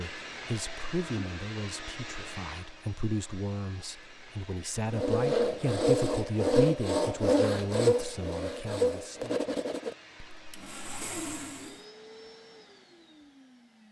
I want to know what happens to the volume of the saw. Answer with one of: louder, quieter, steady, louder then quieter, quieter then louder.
quieter.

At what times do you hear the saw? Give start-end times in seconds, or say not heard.
4.9-11.8.